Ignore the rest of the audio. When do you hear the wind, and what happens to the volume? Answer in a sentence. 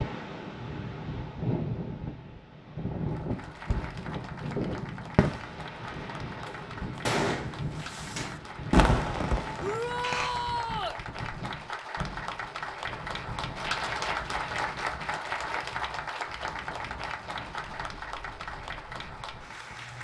The wind can be heard from 0.0 to 20.0 s, getting quieter.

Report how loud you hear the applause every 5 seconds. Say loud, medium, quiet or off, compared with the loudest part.
medium, medium, loud, loud.